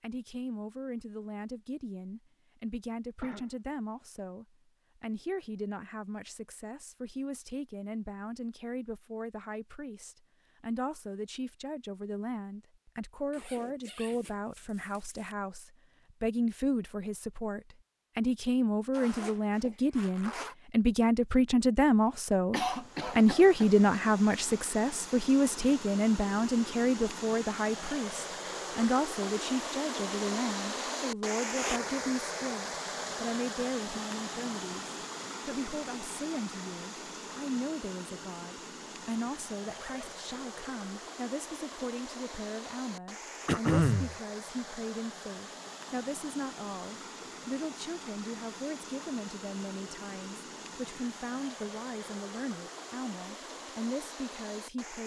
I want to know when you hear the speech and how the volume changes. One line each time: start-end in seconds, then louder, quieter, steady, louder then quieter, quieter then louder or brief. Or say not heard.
0.0-55.0 louder then quieter.